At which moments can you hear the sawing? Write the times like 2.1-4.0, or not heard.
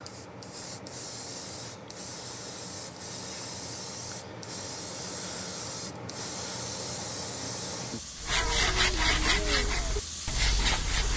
8.2-11.1.